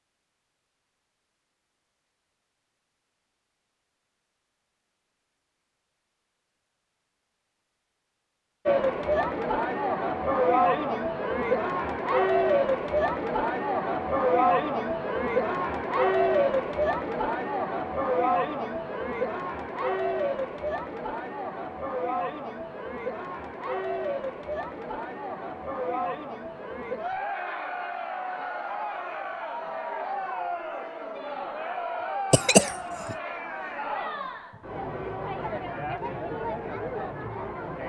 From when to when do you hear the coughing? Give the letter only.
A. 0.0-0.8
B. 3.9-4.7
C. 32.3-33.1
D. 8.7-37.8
C.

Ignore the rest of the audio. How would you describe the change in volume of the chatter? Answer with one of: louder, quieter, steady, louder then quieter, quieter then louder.
quieter.